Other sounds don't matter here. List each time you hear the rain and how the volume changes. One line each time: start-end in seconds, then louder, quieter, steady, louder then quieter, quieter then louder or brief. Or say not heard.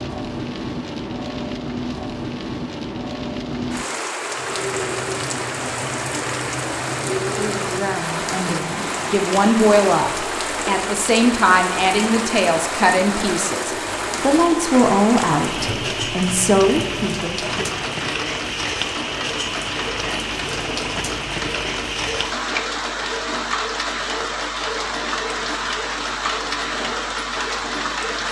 0.0-28.2 steady.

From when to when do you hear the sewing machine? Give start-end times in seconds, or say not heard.
4.2-28.2.